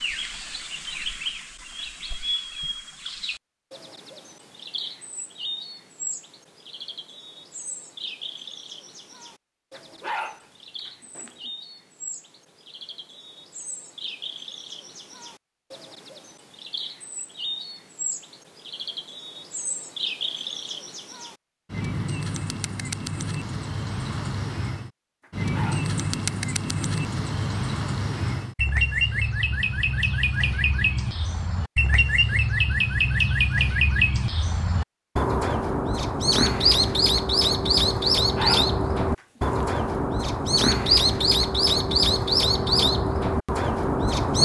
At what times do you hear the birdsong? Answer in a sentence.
The birdsong can be heard from 0.0 to 44.4 s.